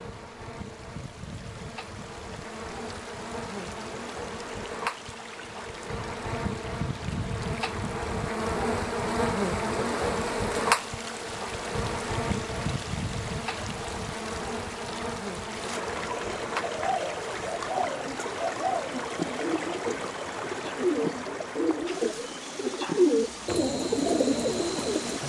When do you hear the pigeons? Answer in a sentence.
The pigeons can be heard from 16.6 to 25.2 s.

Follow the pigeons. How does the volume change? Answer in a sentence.
The loudness of the pigeons goes up.